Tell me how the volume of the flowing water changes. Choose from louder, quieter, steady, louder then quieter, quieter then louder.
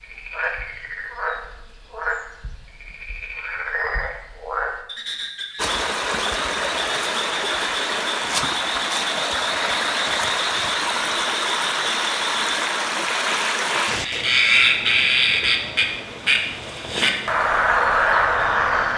quieter.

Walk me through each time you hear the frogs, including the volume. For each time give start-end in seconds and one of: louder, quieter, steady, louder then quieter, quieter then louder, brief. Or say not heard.
0.0-18.9 louder.